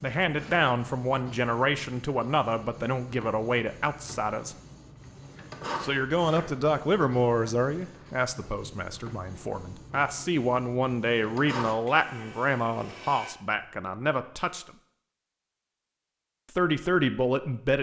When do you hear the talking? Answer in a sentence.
You can hear the talking from 0.0 to 4.5 s, from 5.8 to 14.7 s and from 16.6 to 17.7 s.